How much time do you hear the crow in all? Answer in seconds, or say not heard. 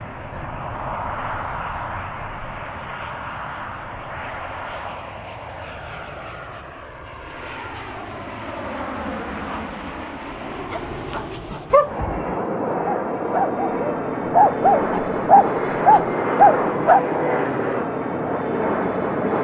not heard.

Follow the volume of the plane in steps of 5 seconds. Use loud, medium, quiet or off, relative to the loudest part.
medium, medium, loud, loud.